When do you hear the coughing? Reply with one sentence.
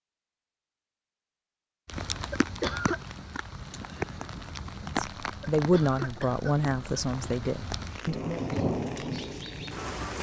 You can hear the coughing from 2.3 to 3.0 s and from 5.4 to 7.3 s.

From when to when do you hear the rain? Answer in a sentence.
You can hear the rain from 1.9 to 10.1 s.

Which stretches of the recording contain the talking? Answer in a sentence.
The talking can be heard from 4.8 to 8.4 s.